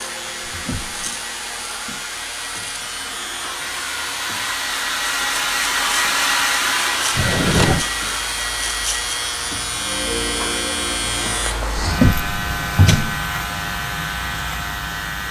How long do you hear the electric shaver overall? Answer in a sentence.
The electric shaver can be heard for 15 seconds in total.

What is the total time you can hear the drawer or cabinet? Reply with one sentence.
The drawer or cabinet can be heard for 3 seconds in total.